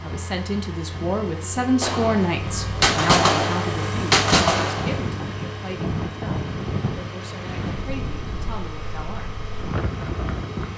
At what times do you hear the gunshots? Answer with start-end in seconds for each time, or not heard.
1.8-5.0.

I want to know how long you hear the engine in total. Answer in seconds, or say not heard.
11 s.